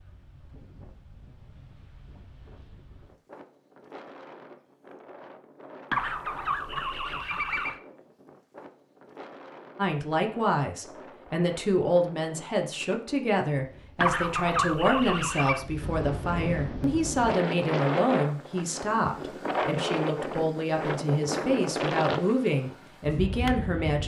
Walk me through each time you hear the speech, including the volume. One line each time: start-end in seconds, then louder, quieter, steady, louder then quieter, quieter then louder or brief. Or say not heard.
9.8-24.0 steady.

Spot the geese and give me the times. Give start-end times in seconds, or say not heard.
5.9-7.8, 14.0-15.6.